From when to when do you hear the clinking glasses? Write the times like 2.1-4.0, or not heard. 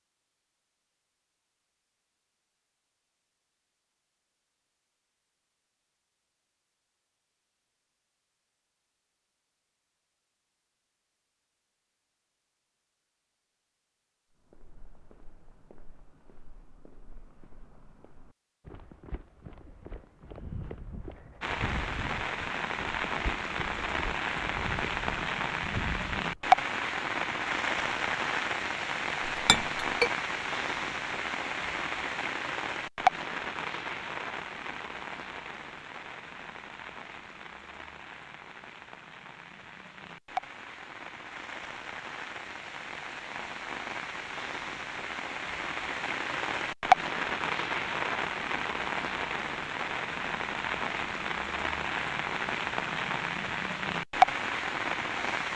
29.4-30.1.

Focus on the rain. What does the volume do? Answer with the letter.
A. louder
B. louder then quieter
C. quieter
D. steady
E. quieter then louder
E.